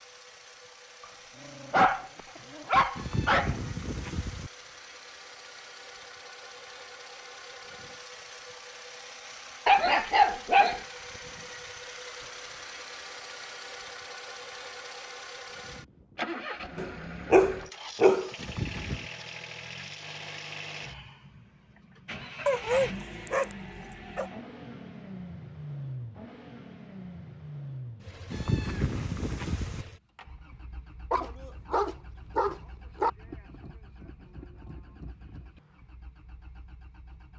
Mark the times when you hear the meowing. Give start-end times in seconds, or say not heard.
3.0-4.5, 18.4-19.1, 28.3-29.9.